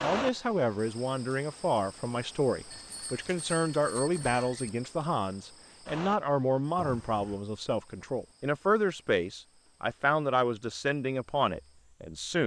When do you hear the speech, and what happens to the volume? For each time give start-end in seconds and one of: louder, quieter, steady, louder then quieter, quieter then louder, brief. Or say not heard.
0.0-12.4 steady.